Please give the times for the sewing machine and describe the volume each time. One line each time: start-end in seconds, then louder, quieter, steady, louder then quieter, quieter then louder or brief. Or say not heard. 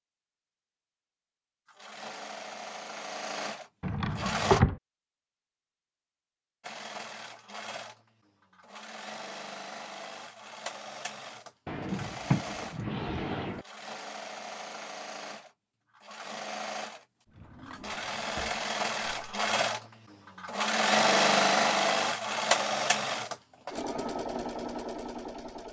1.6-4.6 brief
6.6-25.6 louder.